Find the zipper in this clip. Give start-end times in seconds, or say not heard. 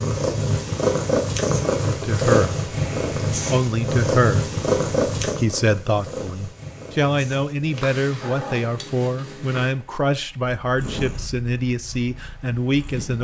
not heard.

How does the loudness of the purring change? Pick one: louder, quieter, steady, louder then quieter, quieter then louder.
quieter.